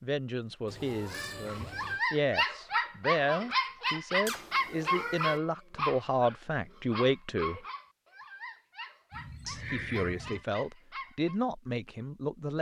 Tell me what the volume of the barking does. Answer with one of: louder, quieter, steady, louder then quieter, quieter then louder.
quieter.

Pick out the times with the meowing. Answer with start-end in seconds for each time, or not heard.
0.7-2.0, 4.2-5.4, 9.1-10.4.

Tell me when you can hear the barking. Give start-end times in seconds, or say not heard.
1.2-11.3.